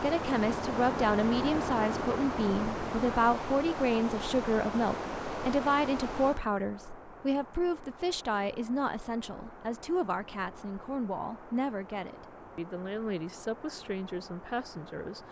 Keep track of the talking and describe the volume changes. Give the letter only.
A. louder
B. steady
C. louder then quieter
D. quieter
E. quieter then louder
D.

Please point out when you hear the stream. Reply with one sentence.
You can hear the stream from 0.0 to 15.2 s.